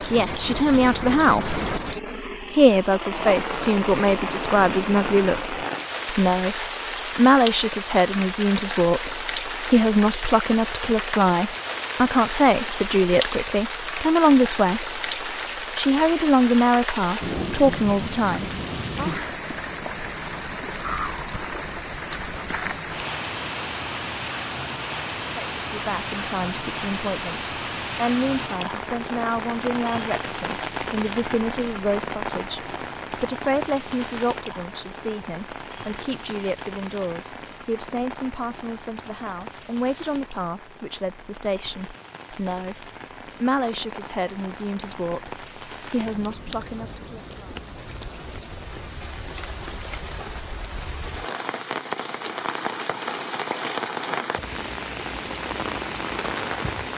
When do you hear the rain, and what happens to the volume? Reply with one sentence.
You can hear the rain from 0.0 to 56.9 s, getting quieter then louder.